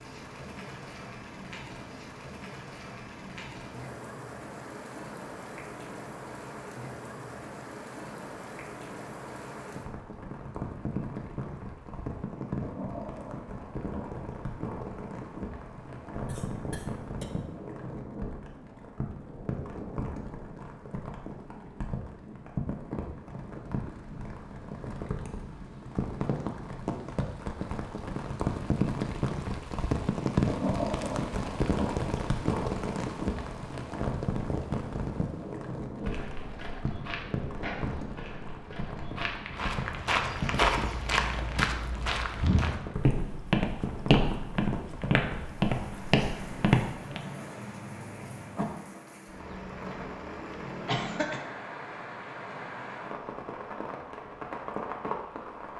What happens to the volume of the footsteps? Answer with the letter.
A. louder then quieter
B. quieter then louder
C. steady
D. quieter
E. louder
E.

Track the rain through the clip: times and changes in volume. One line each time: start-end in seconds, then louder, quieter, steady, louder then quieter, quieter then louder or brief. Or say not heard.
0.0-55.7 louder then quieter.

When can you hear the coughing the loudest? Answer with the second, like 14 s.
51 s.